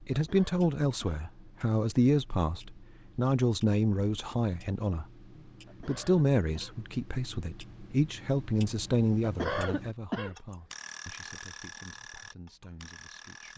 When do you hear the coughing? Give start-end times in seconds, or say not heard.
0.1-1.2, 5.7-6.8, 9.2-10.3.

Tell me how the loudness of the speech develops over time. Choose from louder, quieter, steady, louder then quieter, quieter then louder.
quieter.